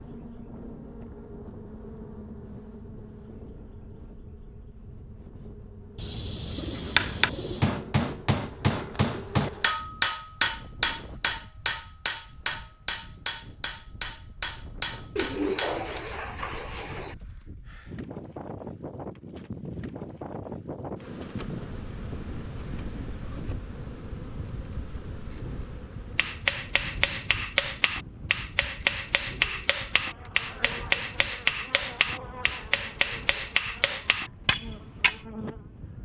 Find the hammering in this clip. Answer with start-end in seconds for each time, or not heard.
6.8-16.0, 26.1-35.2.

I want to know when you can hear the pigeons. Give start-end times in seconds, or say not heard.
6.0-7.7, 15.2-17.1, 28.6-30.3.